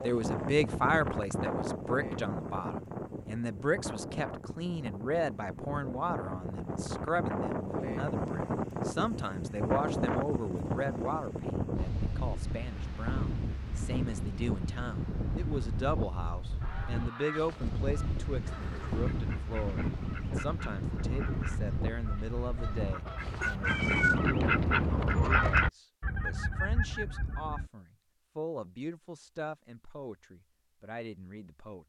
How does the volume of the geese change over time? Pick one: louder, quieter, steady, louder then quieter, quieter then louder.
louder.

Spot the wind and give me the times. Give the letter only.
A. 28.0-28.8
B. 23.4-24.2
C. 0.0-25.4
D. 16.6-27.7
C.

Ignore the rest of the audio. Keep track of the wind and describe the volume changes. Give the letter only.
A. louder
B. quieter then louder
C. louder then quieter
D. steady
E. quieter
D.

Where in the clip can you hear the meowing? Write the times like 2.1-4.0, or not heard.
23.4-24.2.